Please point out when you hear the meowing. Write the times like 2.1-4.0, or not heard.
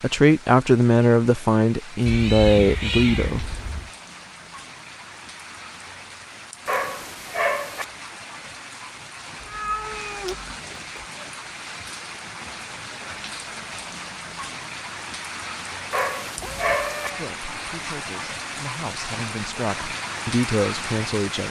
2.0-3.9, 9.4-11.1, 16.4-17.2.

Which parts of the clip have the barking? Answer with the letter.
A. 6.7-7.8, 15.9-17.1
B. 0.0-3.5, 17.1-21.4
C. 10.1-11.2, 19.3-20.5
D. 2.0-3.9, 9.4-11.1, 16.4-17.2
A.